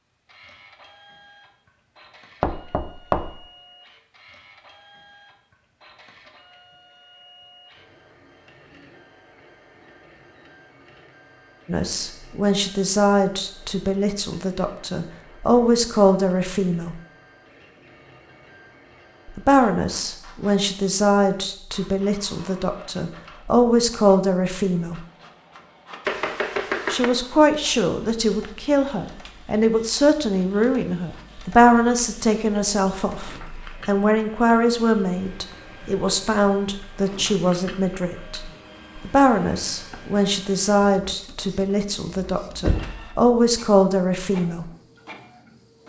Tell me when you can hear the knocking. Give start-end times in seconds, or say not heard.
2.4-3.3, 26.1-27.1, 42.6-43.0.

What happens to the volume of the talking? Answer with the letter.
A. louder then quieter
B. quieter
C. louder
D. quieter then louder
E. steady
E.